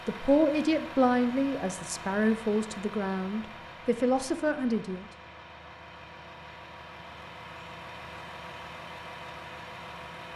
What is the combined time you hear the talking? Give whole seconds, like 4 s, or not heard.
5 s.